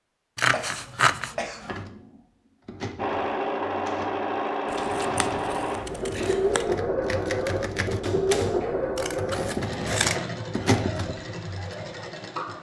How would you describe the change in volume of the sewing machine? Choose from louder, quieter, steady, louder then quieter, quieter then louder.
quieter.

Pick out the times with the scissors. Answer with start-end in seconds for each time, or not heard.
0.3-1.4, 4.7-6.7, 8.9-10.2.